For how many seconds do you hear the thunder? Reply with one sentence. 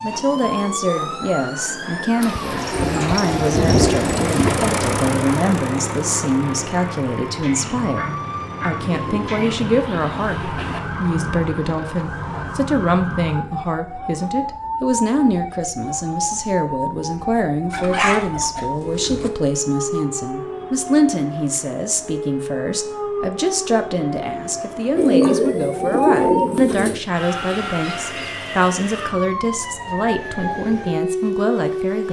You can hear the thunder for 2 seconds altogether.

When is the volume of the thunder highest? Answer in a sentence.
The volume of the thunder peaks at 4 seconds.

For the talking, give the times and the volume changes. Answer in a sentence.
The talking can be heard from 0.0 to 32.0 s, at a steady volume.